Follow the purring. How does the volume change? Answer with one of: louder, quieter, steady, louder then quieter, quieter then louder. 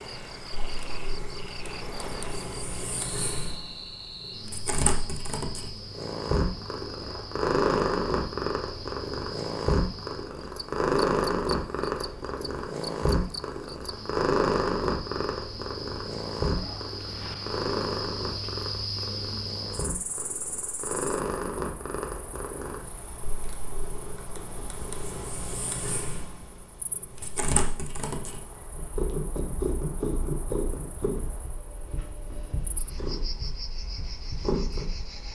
louder then quieter.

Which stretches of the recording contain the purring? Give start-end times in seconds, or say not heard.
0.0-35.3.